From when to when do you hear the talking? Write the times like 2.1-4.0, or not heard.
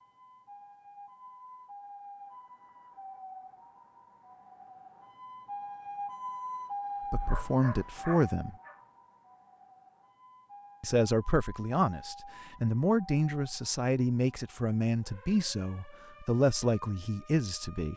7.1-8.6, 10.8-17.9.